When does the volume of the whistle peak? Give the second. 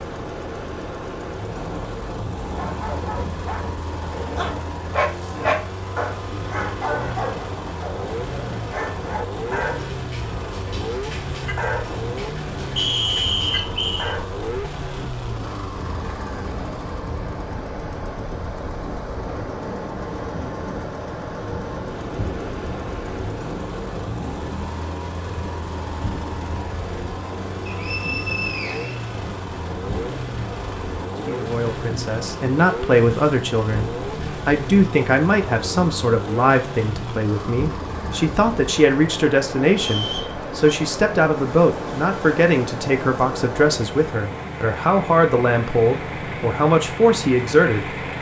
13 s.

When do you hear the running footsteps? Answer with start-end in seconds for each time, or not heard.
not heard.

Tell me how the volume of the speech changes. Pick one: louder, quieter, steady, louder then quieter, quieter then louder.
steady.